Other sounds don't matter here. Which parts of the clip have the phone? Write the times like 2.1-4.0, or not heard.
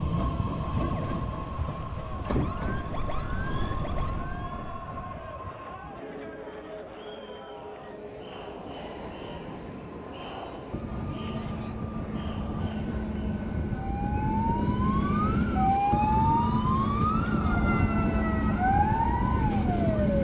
not heard.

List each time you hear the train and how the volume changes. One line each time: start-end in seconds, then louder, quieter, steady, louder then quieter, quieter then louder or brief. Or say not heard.
0.0-20.1 quieter then louder.